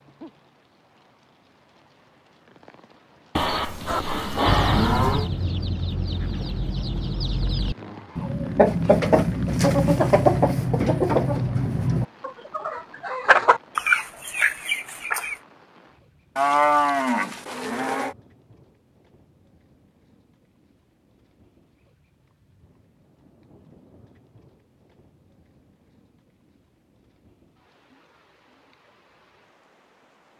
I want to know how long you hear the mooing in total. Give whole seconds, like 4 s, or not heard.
4 s.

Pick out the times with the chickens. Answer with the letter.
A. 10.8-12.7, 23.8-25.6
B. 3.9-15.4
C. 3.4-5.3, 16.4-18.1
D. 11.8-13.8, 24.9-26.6
B.